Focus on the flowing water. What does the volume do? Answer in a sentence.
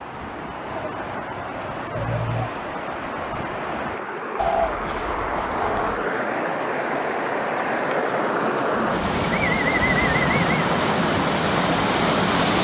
The loudness of the flowing water goes up.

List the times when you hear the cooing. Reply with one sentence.
You can hear the cooing from 0.7 to 2.5 s, from 4.3 to 6.0 s and from 8.8 to 10.7 s.